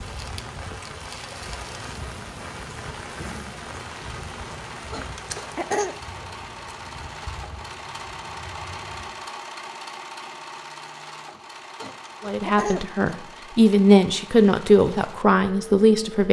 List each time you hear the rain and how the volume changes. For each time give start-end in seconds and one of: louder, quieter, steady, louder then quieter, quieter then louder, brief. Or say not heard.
0.0-9.3 quieter.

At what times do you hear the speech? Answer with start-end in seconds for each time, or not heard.
12.2-16.2.